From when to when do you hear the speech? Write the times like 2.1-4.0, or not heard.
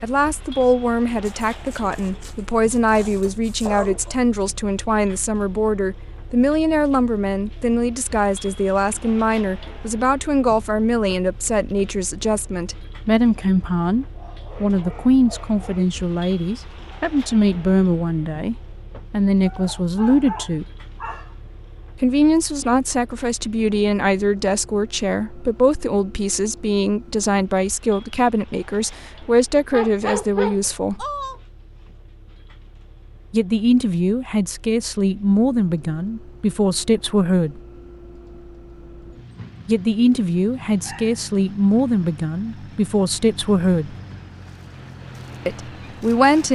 0.0-20.6, 21.9-31.1, 33.3-37.6, 39.6-44.0, 45.5-46.5.